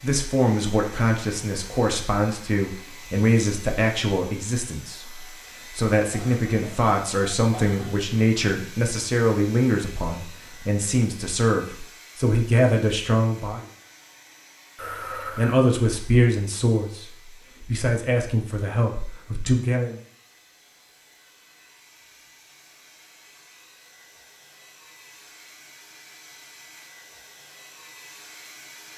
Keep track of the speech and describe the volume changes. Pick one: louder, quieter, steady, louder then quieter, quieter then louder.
steady.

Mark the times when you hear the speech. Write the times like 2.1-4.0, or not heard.
0.0-13.7, 15.3-20.0.